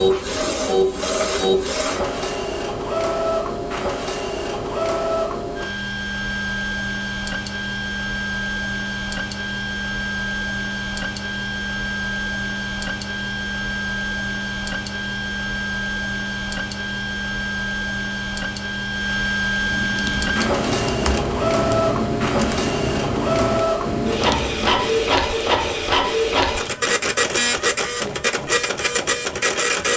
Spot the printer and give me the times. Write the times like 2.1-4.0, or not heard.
0.0-29.9.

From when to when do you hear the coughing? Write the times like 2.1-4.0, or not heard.
not heard.